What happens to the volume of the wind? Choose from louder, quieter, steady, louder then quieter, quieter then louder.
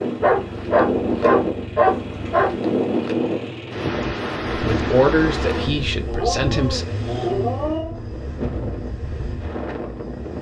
quieter.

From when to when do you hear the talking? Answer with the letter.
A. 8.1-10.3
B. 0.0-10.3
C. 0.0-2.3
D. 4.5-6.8
D.